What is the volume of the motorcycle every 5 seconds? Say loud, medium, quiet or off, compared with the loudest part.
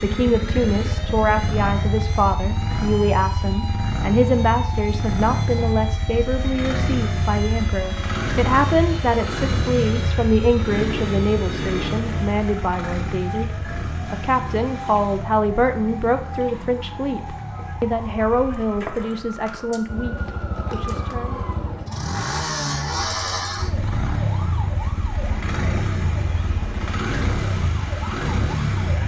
loud, loud, loud, medium, loud, loud.